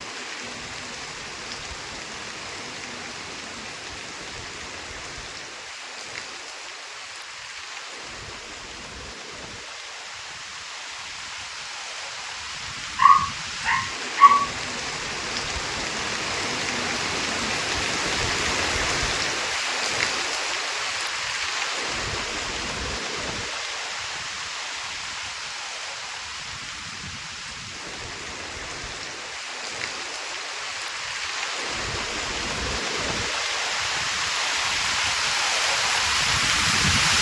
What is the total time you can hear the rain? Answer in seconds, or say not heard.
37 s.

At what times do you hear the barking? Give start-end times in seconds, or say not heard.
12.9-14.5.